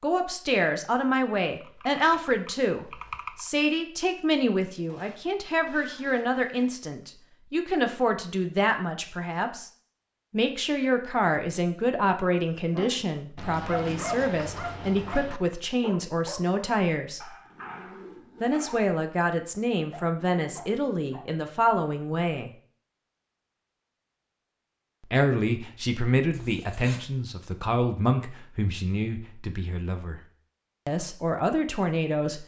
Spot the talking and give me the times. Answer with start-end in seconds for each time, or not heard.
0.0-9.7, 10.3-17.2, 18.4-22.5, 25.1-30.2, 30.9-32.4.